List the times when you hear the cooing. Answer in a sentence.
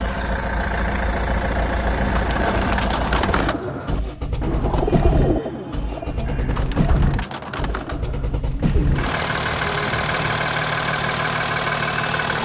You can hear the cooing from 1.4 to 10.4 s.